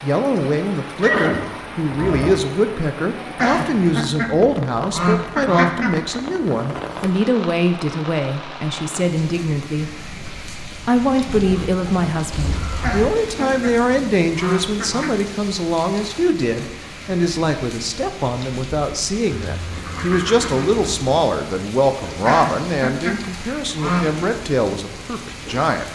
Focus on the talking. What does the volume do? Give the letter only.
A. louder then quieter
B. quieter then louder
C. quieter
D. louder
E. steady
E.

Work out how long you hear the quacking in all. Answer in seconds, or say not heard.
7 s.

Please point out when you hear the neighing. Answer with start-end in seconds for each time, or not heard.
1.0-2.5, 11.2-13.1, 19.5-21.0.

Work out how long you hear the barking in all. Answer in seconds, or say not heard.
not heard.